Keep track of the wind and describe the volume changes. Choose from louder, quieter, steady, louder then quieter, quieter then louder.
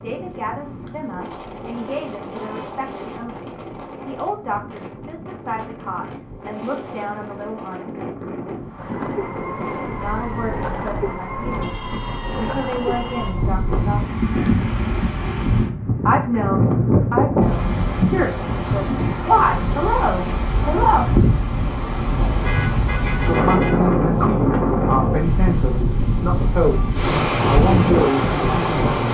louder.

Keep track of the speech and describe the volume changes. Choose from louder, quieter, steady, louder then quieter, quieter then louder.
louder.